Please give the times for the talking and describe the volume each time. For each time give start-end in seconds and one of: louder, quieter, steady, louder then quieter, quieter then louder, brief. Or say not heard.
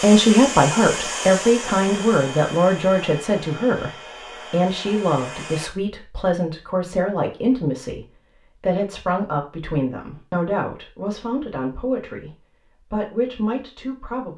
0.0-14.3 quieter.